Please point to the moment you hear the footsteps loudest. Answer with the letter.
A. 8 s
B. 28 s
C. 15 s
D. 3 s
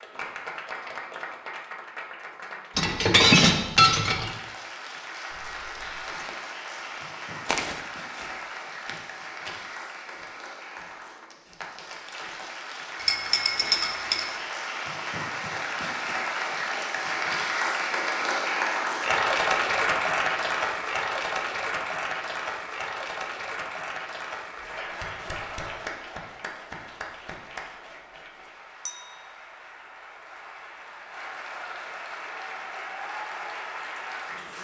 A.